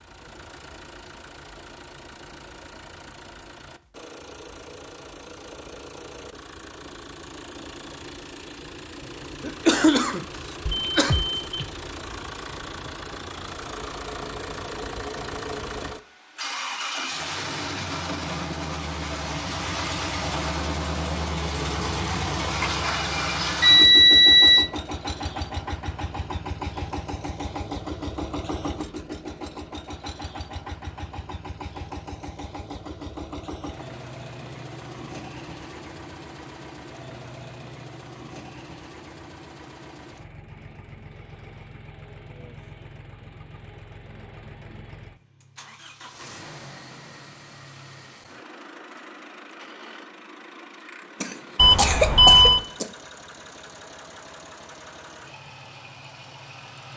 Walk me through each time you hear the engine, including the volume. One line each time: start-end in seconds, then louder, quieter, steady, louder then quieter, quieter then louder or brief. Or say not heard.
0.0-56.9 louder then quieter.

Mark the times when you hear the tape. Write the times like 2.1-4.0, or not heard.
not heard.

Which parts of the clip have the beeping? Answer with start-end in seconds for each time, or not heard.
10.7-11.7, 22.6-24.7, 51.5-52.6.